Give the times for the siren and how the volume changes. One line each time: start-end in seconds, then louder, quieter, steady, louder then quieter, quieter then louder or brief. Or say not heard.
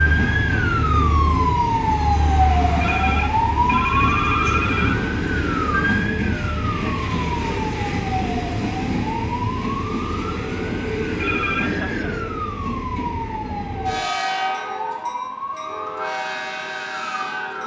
0.0-17.6 quieter.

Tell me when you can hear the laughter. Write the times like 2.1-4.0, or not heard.
11.6-12.3.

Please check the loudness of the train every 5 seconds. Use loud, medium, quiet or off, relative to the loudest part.
loud, loud, loud, medium.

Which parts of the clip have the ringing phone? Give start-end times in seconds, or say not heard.
2.8-5.0, 11.2-11.7.